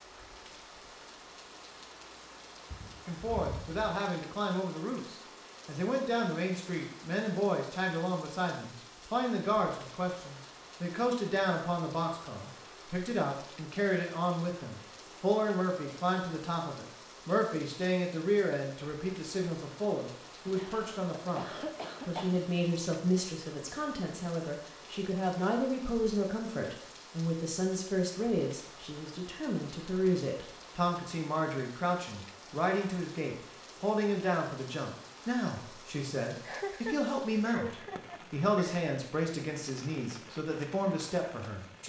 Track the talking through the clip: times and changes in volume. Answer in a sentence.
You can hear the talking from 3.0 to 41.8 s, at a steady volume.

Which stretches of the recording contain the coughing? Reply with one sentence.
You can hear the coughing from 2.7 to 4.0 s, from 20.4 to 22.4 s and from 36.4 to 38.8 s.